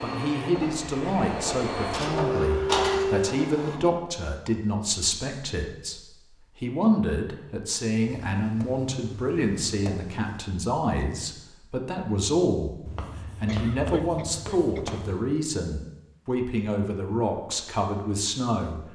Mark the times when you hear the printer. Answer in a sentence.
You can hear the printer from 0.0 to 3.8 s.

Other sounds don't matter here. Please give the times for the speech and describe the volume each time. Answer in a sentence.
The speech can be heard from 0.0 to 18.9 s, at a steady volume.